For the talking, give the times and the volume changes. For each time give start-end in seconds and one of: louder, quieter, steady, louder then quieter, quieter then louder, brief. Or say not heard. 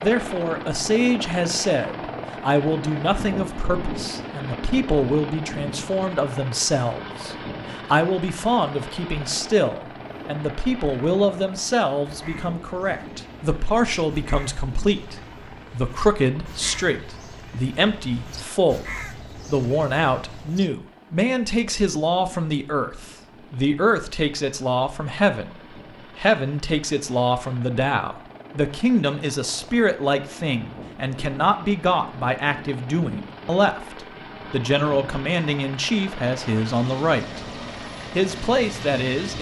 0.0-39.3 steady.